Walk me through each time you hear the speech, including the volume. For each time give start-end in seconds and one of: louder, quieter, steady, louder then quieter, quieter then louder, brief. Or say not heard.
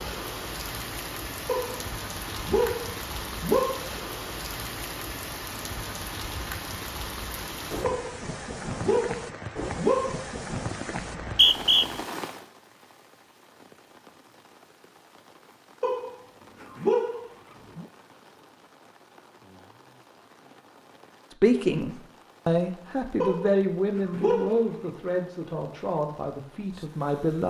21.4-27.4 quieter.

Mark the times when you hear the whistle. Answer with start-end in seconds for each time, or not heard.
10.9-11.8.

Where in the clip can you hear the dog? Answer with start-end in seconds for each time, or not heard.
1.4-3.9, 7.8-10.2, 15.8-17.9, 23.2-24.7.